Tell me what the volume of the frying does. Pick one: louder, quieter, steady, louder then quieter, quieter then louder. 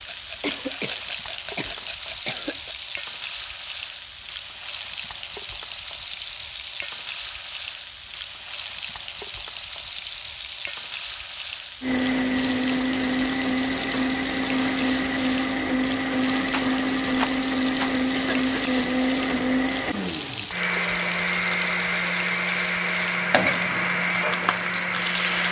steady.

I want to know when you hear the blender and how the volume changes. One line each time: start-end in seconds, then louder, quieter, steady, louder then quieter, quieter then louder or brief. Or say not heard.
11.8-25.4 steady.